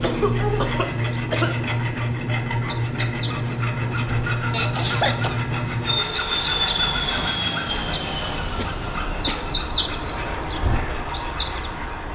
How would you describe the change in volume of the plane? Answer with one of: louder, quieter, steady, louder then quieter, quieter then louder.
quieter.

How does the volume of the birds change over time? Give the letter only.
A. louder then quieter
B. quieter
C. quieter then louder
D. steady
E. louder
E.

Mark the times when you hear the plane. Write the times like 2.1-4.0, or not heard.
0.0-12.1.